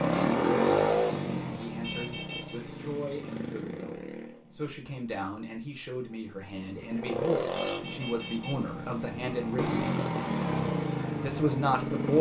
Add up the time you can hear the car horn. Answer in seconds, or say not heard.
2 s.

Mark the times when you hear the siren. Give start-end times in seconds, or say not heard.
not heard.